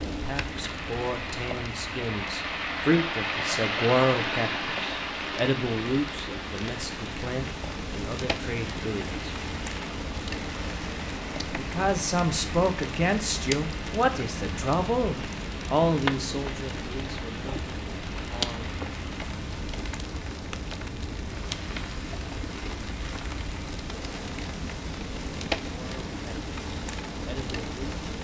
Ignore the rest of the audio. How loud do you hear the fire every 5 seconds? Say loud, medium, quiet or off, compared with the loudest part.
medium, loud, loud, loud, loud, loud.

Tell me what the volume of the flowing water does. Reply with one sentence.
The loudness of the flowing water goes down.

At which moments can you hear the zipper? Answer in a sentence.
The zipper can't be heard in this clip.